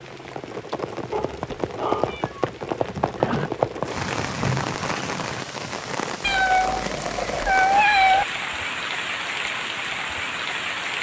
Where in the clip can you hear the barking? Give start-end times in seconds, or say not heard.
1.1-2.2.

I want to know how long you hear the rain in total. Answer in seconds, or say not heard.
11 s.